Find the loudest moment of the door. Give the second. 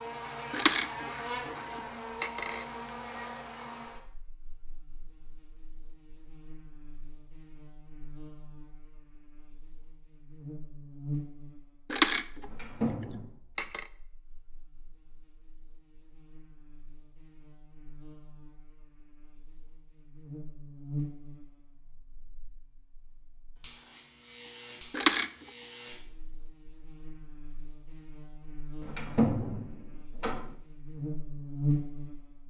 29 s.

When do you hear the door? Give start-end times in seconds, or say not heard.
12.4-13.3, 28.8-30.6.